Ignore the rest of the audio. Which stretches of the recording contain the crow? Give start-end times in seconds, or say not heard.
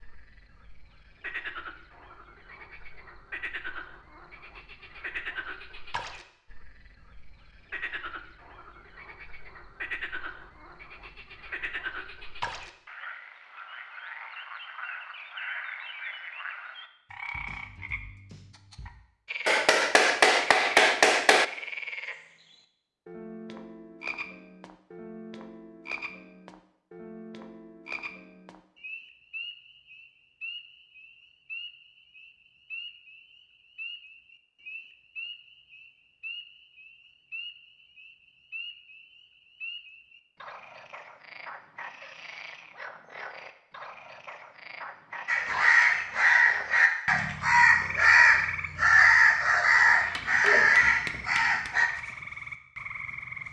45.2-51.9.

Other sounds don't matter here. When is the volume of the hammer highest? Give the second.
21 s.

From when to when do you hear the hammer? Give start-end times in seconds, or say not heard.
19.4-21.4, 50.1-51.8.